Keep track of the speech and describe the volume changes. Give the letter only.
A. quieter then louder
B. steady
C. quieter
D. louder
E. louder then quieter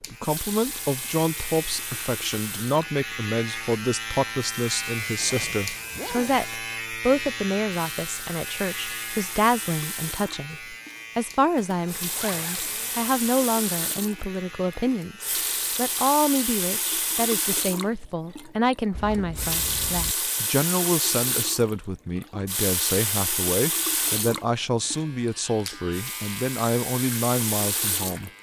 B.